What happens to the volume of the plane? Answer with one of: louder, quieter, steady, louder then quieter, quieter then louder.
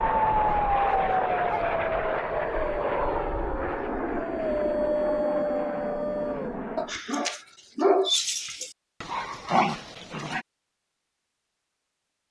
quieter.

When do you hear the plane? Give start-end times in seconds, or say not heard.
0.0-7.0.